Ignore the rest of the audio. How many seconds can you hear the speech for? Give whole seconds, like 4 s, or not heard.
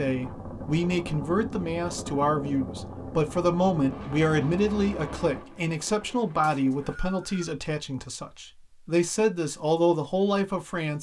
11 s.